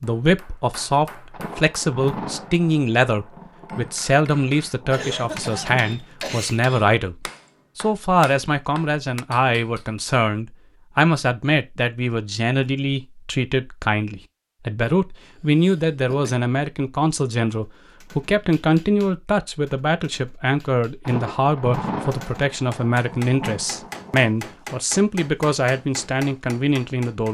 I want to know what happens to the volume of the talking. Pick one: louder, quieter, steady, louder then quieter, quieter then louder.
steady.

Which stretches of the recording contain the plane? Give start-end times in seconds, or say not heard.
not heard.